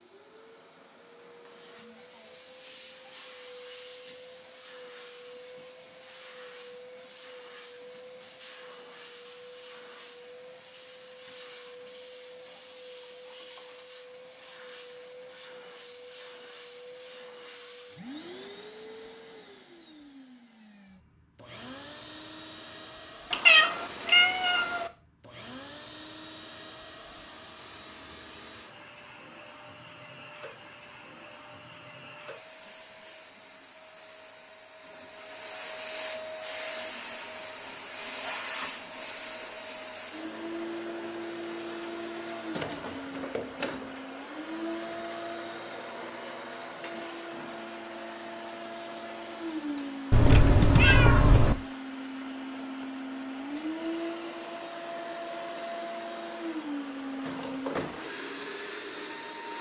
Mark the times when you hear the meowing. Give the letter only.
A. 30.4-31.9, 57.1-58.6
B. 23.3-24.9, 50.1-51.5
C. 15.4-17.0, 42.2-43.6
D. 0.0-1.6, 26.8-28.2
B.